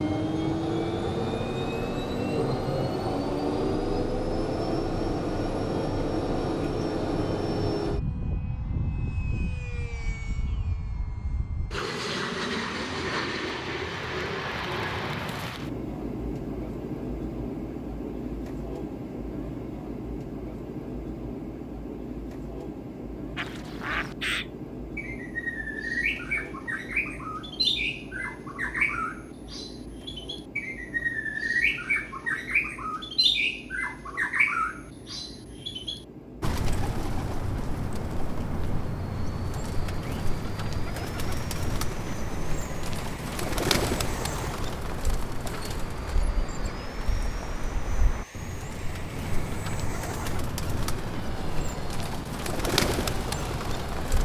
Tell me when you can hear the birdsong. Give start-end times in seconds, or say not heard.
23.4-54.2.